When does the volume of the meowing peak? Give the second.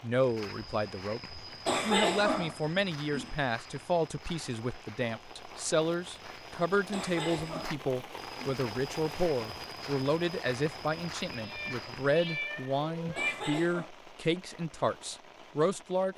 13 s.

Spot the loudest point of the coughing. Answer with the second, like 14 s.
2 s.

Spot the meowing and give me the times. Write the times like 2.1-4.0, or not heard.
11.3-13.4.